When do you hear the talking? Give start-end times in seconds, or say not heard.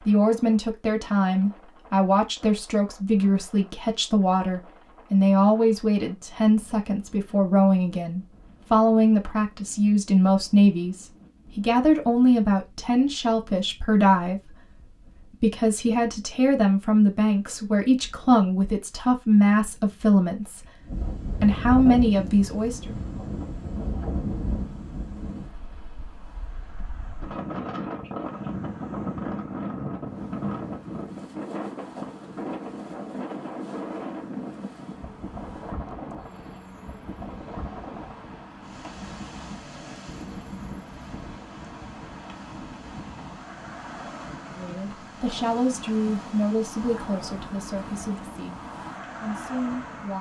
0.0-22.9, 44.5-50.1.